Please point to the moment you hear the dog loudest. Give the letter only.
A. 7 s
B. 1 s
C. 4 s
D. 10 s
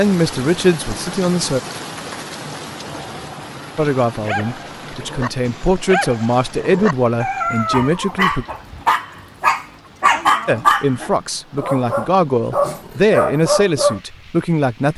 D.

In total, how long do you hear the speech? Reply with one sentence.
You can hear the speech for 11 seconds altogether.